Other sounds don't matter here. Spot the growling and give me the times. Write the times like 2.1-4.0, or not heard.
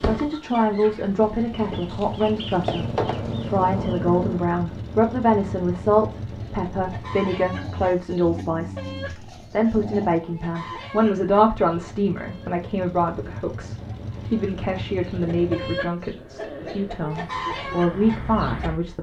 2.6-4.5, 7.5-10.2, 15.2-17.1.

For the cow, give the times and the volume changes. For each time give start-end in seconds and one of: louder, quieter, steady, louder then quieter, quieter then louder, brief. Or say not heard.
not heard.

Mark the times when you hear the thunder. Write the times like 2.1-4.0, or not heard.
not heard.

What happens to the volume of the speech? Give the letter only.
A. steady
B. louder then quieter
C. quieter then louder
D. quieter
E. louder
A.